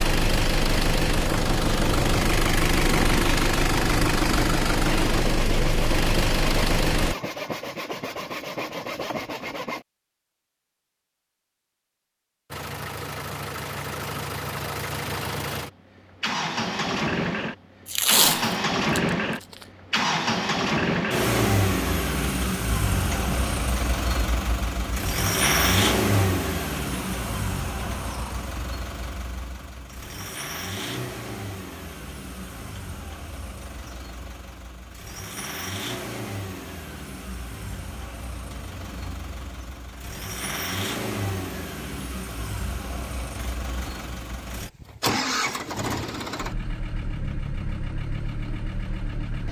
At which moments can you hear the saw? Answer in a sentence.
You can hear the saw from 5.0 to 9.8 s.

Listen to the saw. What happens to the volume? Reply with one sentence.
The volume of the saw stays about the same.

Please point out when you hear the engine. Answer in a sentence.
You can hear the engine from 0.0 to 7.2 s and from 12.5 to 49.4 s.